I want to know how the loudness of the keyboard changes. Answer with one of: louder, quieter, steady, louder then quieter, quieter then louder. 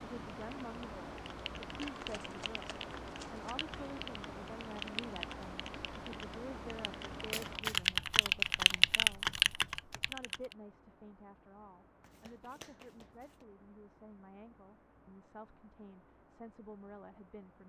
louder.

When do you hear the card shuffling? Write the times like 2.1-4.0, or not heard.
1.8-3.5, 7.3-7.8, 12.0-13.4.